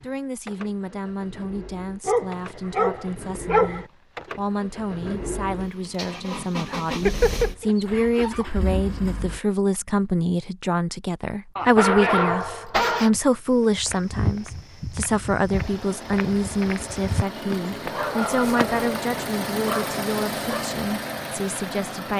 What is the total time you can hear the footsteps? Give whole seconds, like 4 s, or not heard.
5 s.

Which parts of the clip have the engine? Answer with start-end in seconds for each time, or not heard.
0.0-9.4, 11.7-13.6, 15.5-22.1.